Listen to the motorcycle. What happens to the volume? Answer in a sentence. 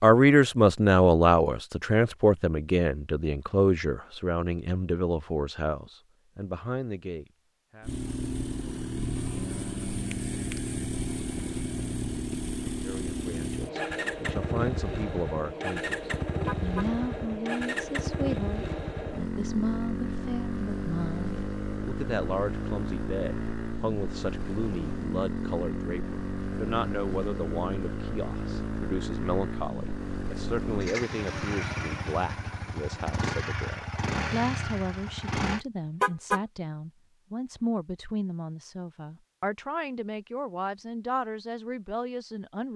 The volume of the motorcycle stays about the same.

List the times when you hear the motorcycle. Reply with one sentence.
The motorcycle can be heard from 7.8 to 35.6 s.